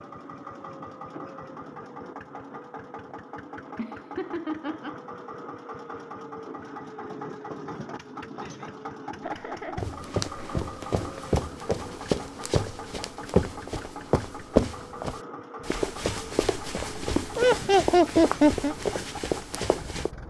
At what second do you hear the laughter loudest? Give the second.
18 s.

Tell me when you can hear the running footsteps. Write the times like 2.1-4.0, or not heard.
9.8-20.1.